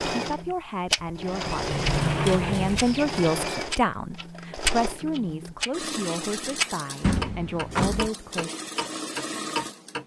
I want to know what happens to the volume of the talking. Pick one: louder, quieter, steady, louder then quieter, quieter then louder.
louder then quieter.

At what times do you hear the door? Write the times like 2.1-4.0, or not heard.
1.4-3.4, 7.0-8.1.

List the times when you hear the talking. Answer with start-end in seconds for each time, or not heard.
0.1-8.5.